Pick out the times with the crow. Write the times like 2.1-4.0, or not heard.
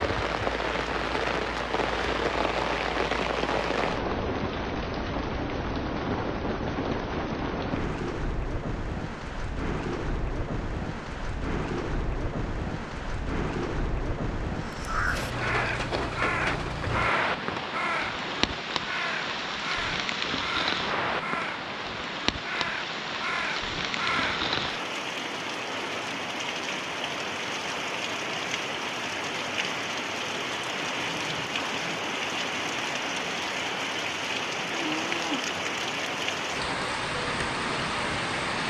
14.6-24.9.